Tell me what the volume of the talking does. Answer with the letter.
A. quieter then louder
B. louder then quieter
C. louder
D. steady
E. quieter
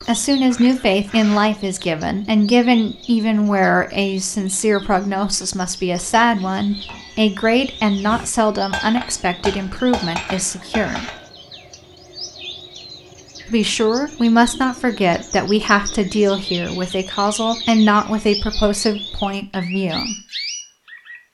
D.